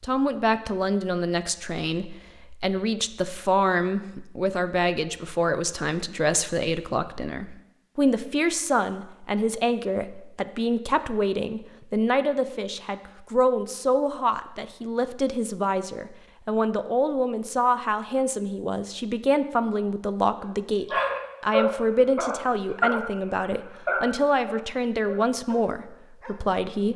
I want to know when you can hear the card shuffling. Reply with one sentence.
You can't hear the card shuffling here.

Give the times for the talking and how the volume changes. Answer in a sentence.
You can hear the talking from 0.0 to 26.9 s, at a steady volume.